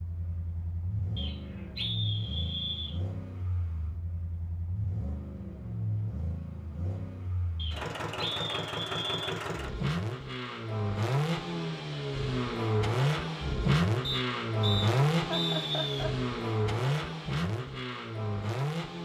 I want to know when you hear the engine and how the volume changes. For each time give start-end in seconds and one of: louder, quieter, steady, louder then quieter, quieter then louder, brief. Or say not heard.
0.0-19.0 louder.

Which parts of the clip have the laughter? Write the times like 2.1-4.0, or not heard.
15.2-16.1.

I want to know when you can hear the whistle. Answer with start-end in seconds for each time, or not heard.
1.1-3.0, 7.5-9.4, 14.0-16.1.